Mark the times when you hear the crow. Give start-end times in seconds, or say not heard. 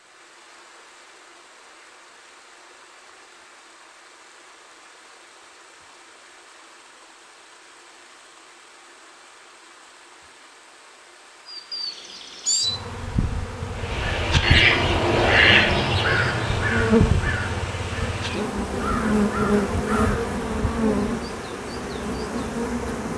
13.7-20.2.